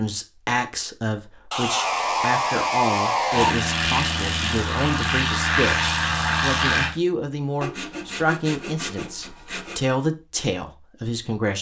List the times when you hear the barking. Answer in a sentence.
The barking can't be heard in this clip.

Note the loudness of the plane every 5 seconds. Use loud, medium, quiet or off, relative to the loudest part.
loud, loud, off.